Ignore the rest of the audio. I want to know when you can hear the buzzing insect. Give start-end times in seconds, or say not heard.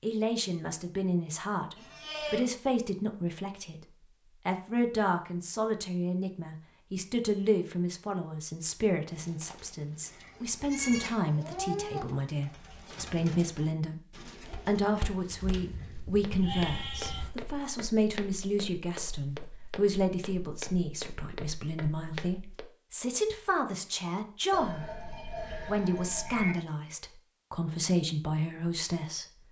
not heard.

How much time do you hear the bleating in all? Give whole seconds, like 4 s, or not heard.
7 s.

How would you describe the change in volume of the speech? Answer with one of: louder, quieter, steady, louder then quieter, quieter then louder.
steady.